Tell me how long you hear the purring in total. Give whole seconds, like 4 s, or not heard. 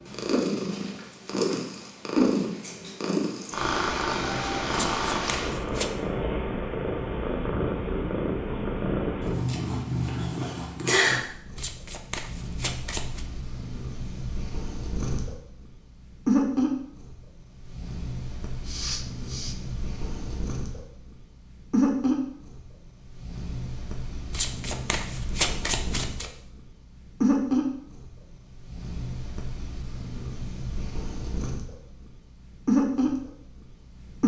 34 s.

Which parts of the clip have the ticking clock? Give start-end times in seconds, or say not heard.
not heard.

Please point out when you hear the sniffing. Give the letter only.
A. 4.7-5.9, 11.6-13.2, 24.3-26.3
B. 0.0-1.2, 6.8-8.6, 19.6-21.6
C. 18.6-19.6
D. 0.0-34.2
C.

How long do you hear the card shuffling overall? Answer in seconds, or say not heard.
5 s.